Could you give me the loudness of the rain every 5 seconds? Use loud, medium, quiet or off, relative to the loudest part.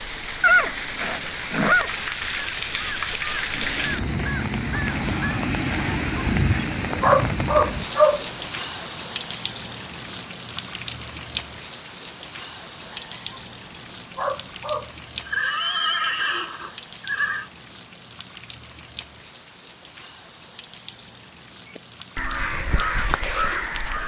loud, loud, medium, quiet, quiet.